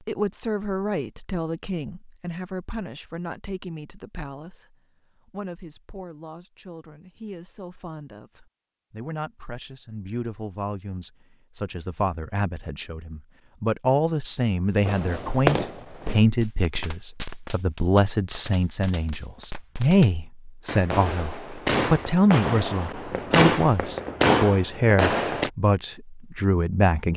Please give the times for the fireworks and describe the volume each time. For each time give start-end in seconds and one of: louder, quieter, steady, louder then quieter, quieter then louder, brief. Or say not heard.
14.8-25.5 quieter then louder.